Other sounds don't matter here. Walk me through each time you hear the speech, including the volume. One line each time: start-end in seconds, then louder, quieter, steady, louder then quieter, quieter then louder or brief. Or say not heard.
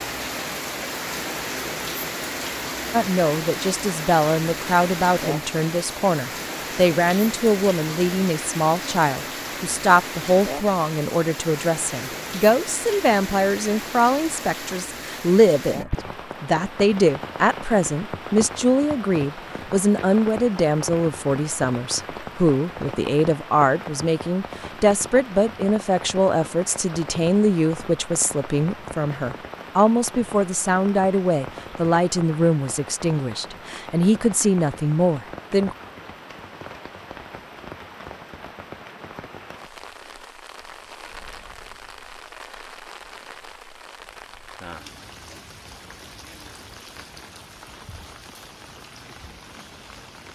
2.9-35.8 steady.